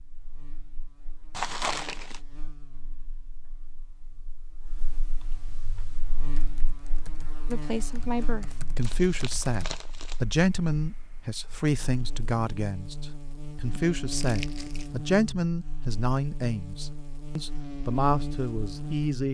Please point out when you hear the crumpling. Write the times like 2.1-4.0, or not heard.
1.3-2.2, 8.8-10.2, 14.1-14.9.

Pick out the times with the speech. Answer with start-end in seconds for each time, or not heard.
7.5-19.2.